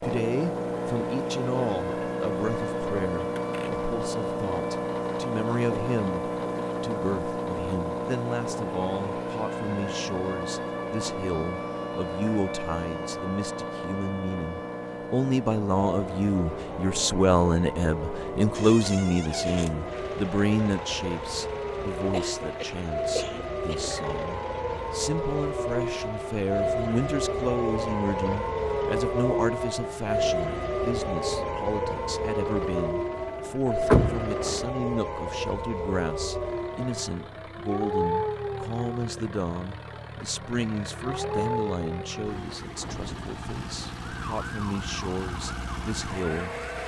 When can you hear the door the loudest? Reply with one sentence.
The volume of the door peaks at 34 seconds.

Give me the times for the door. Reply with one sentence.
You can hear the door from 3.4 to 3.9 s, from 18.5 to 19.8 s and from 33.9 to 34.6 s.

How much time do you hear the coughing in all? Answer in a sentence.
You can hear the coughing for 2 seconds altogether.